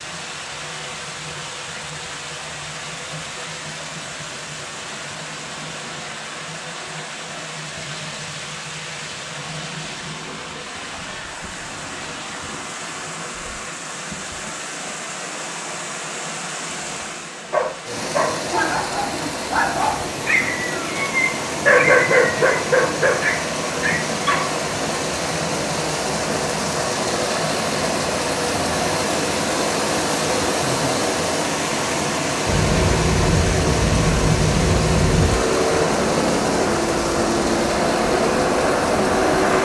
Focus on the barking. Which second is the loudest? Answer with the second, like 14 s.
22 s.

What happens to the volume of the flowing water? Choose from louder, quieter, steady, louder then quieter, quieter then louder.
louder.